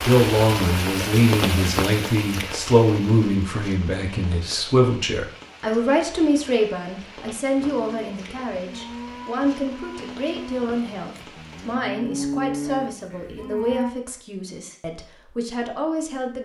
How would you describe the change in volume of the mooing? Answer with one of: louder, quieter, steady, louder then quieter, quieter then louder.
louder.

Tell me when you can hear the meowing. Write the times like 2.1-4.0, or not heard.
not heard.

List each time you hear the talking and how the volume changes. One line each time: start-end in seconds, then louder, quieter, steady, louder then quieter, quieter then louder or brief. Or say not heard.
0.1-16.4 quieter.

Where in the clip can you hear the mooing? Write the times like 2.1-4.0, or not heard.
7.5-13.9.